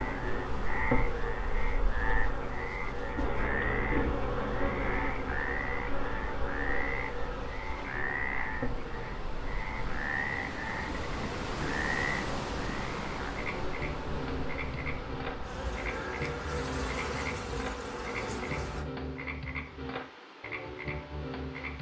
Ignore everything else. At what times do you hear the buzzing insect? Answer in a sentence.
You can hear the buzzing insect from 0.0 to 18.9 s.